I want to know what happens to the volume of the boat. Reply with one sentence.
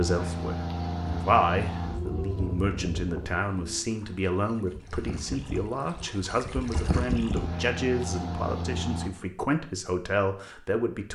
The volume of the boat goes down, then up.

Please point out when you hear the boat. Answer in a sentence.
The boat can be heard from 0.0 to 9.1 s.